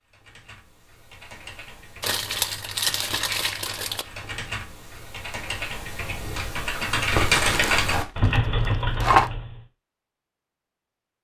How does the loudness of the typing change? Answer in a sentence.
The volume of the typing goes up.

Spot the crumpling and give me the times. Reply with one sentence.
The crumpling can be heard from 2.0 to 4.0 s and from 7.2 to 9.3 s.